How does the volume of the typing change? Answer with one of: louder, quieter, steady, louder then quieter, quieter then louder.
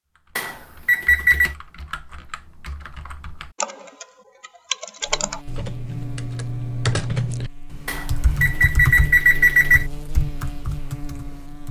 louder then quieter.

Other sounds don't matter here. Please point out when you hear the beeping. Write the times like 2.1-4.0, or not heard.
0.3-1.6, 7.8-9.8.